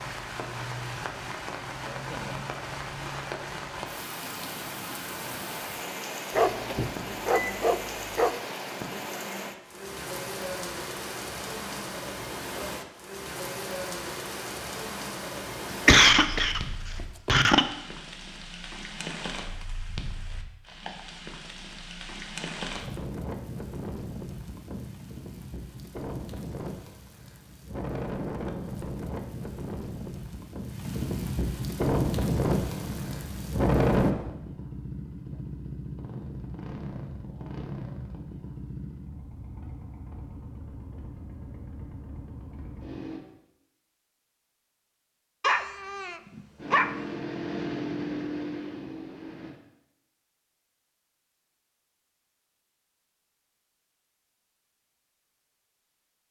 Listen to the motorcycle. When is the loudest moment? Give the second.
48 s.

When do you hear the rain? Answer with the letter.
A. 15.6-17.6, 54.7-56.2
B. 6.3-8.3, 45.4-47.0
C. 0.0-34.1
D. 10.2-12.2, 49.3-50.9
C.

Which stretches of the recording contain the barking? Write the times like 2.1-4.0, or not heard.
6.3-8.3, 45.4-47.0.